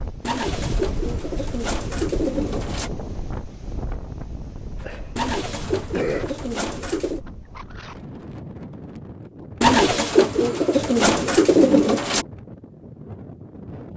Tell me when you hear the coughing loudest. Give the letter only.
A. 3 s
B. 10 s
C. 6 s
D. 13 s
C.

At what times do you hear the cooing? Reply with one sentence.
You can hear the cooing from 0.2 to 2.9 s, from 5.2 to 7.2 s and from 9.6 to 12.2 s.